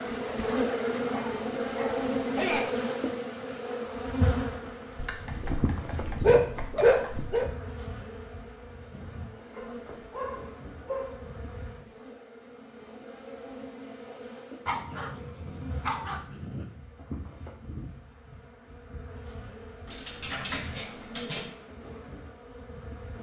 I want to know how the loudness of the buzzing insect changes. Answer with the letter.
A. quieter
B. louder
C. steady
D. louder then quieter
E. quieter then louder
A.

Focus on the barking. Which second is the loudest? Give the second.
7 s.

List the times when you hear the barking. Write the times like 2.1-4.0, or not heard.
1.1-2.6, 5.0-7.5, 9.6-11.2, 14.7-16.6, 19.9-21.4.